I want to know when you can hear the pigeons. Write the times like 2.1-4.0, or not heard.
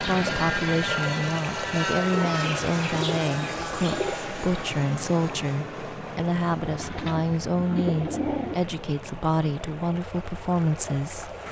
2.1-4.2, 6.7-8.6.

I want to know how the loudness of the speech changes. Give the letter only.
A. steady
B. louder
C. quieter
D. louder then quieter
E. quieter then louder
A.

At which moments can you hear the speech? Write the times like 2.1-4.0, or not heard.
0.0-11.3.